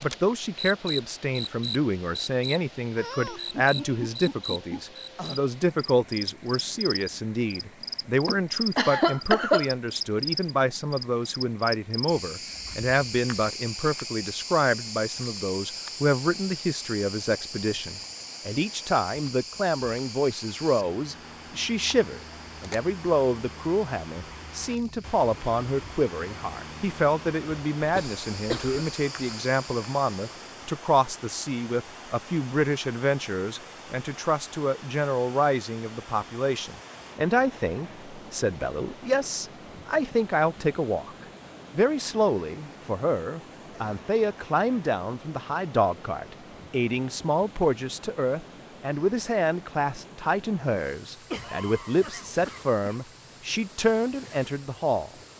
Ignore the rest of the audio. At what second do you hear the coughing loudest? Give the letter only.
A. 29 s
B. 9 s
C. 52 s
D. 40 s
B.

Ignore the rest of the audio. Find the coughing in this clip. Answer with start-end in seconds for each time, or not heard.
8.2-9.7, 27.8-28.9, 51.3-53.0.